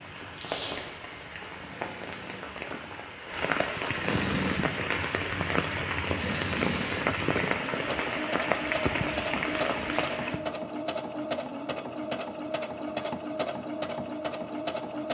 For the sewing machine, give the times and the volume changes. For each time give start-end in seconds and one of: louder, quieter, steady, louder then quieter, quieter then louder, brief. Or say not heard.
0.0-15.0 louder.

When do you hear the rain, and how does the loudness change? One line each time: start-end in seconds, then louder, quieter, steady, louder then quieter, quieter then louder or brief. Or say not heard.
0.0-10.4 louder.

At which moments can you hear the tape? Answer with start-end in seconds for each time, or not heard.
0.3-1.0, 9.1-10.2.